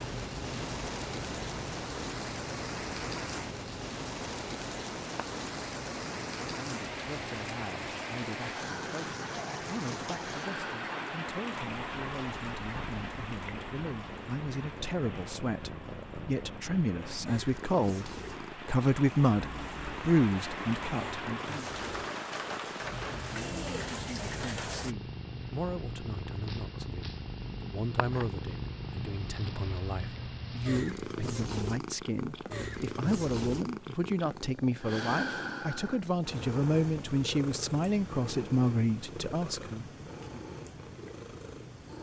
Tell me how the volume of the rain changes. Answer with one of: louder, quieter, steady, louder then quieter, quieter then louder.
quieter then louder.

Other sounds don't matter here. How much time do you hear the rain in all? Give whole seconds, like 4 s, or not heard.
25 s.